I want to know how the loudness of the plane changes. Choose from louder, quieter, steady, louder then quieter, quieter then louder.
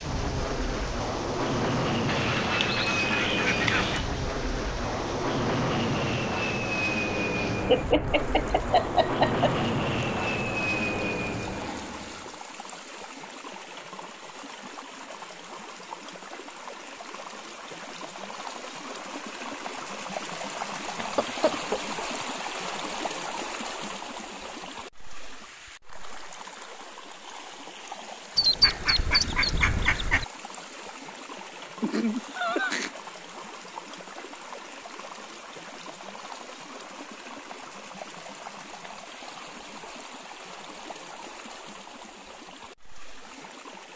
steady.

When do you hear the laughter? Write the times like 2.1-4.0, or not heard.
7.7-9.5, 20.9-22.2, 31.8-32.9.